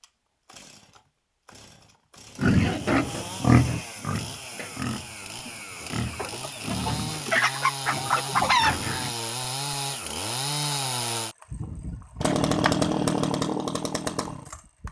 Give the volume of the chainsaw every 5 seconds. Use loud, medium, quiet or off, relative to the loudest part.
quiet, medium, loud.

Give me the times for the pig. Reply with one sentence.
You can hear the pig from 2.4 to 9.2 s.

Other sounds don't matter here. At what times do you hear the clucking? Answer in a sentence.
The clucking can be heard from 6.1 to 8.8 s.